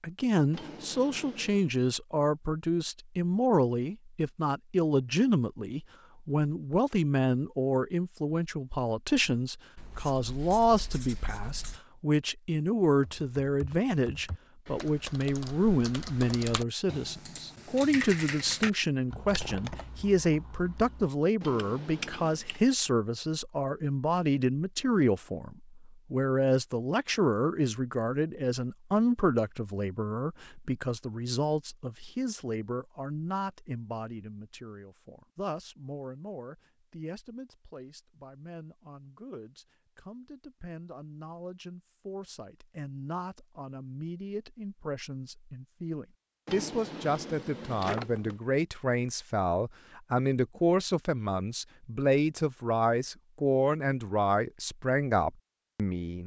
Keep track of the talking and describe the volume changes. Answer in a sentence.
The loudness of the talking goes down, then up.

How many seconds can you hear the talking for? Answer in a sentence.
You can hear the talking for 56 seconds altogether.